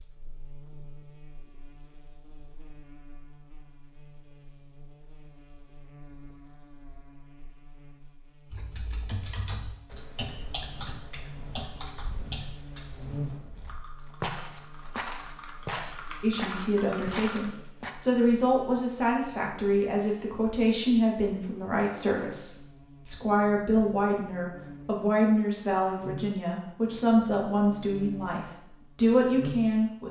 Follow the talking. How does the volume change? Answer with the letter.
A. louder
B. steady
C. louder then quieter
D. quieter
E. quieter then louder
B.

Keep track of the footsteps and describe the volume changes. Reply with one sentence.
The volume of the footsteps goes up.